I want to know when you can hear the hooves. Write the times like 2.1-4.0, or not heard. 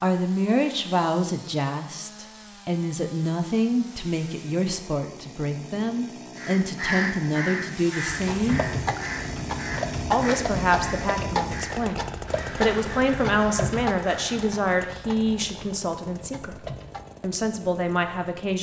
8.1-17.2.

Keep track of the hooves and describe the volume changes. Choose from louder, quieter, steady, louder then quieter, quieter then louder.
quieter.